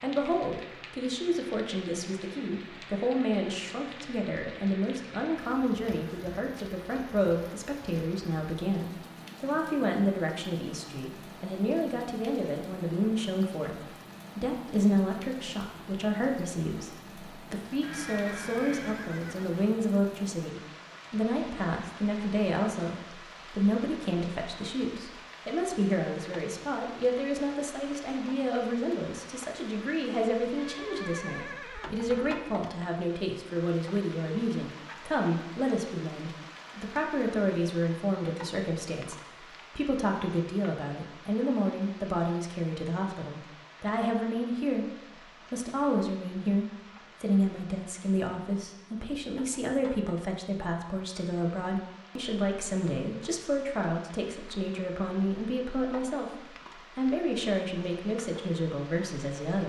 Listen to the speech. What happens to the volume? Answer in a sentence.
The loudness of the speech stays about the same.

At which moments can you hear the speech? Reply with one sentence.
The speech can be heard from 0.0 to 44.9 s and from 45.5 to 59.6 s.